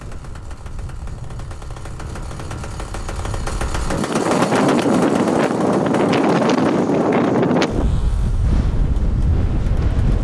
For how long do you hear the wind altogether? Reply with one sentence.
You can hear the wind for 10 seconds altogether.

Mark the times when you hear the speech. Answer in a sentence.
The speech can't be heard in this clip.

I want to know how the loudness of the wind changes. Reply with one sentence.
The volume of the wind goes up, then down.